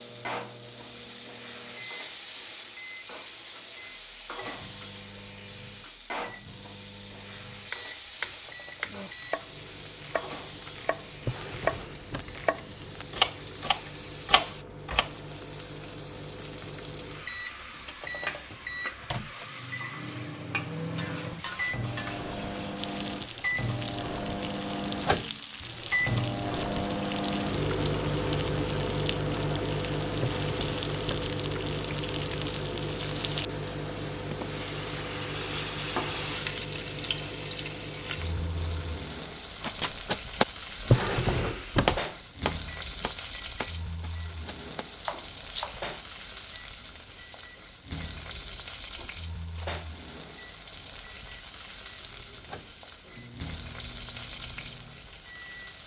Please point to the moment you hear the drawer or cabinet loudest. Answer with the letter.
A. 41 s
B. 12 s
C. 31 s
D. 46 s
A.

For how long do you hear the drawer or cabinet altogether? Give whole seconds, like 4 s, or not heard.
4 s.